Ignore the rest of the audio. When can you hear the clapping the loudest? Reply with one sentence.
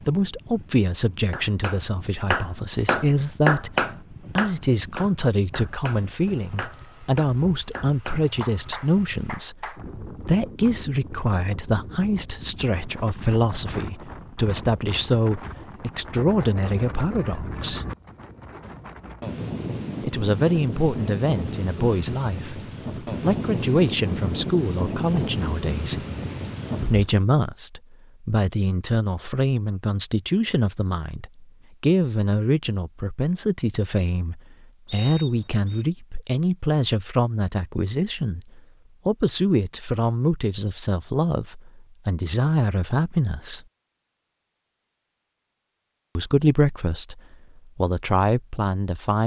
The volume of the clapping peaks at 4 seconds.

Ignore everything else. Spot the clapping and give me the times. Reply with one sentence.
The clapping can be heard from 1.3 to 9.8 s.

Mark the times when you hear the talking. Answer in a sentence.
You can hear the talking from 0.1 to 17.9 s, from 20.0 to 26.1 s, from 26.9 to 43.6 s and from 46.1 to 49.2 s.